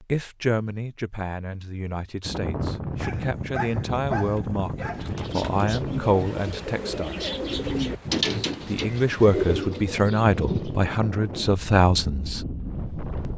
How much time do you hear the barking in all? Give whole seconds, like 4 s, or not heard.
2 s.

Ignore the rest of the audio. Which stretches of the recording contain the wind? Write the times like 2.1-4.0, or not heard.
2.2-13.3.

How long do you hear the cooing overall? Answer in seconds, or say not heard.
6 s.